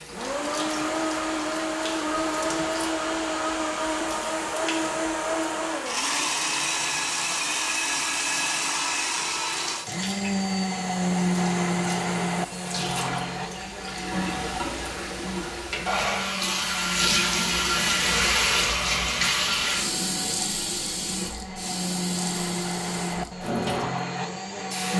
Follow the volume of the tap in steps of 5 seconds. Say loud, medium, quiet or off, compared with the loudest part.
quiet, quiet, medium, loud, medium.